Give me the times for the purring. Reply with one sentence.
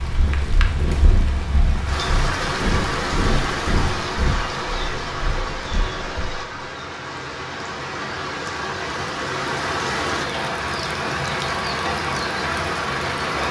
The purring can be heard from 0.0 to 6.3 s.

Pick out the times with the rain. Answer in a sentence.
You can hear the rain from 0.0 to 13.4 s.